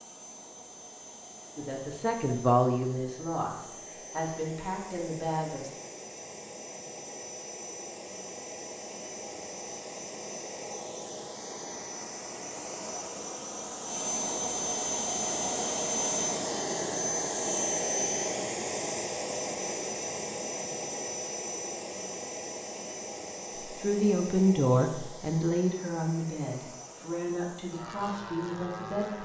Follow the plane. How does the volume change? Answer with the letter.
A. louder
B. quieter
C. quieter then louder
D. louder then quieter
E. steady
D.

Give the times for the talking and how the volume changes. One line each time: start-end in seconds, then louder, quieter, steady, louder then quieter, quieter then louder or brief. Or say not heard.
1.6-5.8 quieter
23.6-29.2 quieter.